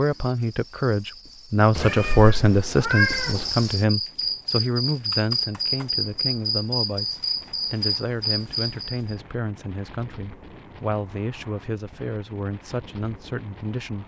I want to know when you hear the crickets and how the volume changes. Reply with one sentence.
You can hear the crickets from 0.0 to 9.2 s, getting louder.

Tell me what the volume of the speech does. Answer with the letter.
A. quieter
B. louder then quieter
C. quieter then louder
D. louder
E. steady
A.